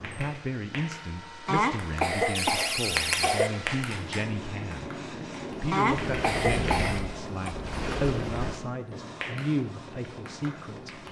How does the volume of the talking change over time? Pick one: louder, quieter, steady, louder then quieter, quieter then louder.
steady.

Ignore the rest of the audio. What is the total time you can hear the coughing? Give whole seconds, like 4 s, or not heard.
4 s.